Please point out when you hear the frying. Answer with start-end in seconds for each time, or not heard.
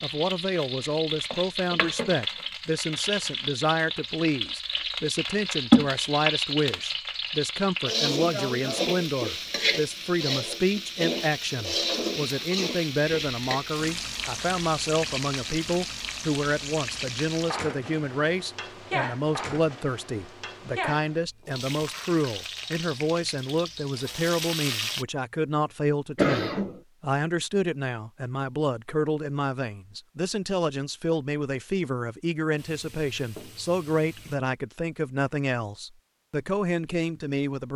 0.0-25.1, 32.6-34.4.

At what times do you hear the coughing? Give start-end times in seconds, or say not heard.
26.1-26.8.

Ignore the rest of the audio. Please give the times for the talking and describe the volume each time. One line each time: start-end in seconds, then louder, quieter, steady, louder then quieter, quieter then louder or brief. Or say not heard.
0.0-37.7 steady.